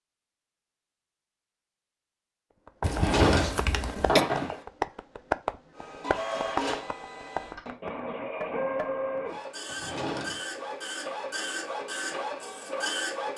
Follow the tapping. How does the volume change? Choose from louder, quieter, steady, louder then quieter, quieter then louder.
louder then quieter.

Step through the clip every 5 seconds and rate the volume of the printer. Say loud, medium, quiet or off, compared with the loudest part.
off, loud, loud.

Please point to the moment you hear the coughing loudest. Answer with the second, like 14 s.
4 s.